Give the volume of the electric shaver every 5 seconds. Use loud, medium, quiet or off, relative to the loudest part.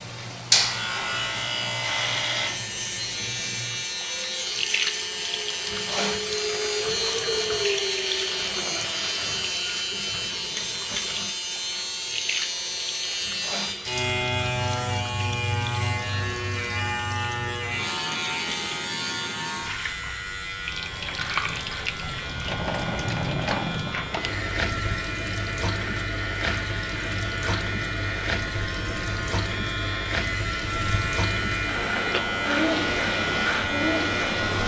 loud, loud, loud, loud, medium, medium, loud.